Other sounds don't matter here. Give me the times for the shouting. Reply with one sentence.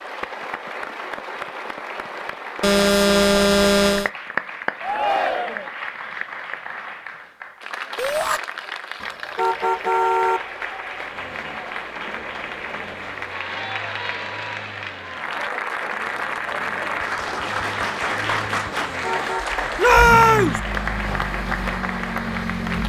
The shouting can be heard from 4.8 to 5.7 s, from 8.0 to 8.4 s and from 19.8 to 20.6 s.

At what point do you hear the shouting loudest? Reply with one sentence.
The volume of the shouting peaks at 20 seconds.